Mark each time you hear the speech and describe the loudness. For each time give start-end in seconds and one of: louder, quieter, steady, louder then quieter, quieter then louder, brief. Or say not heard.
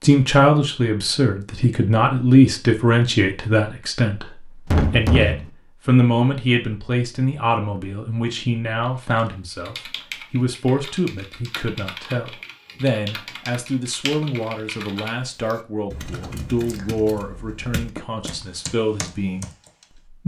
0.0-20.2 quieter.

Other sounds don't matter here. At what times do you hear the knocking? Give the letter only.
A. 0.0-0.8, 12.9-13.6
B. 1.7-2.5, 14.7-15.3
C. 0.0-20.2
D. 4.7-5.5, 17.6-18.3
D.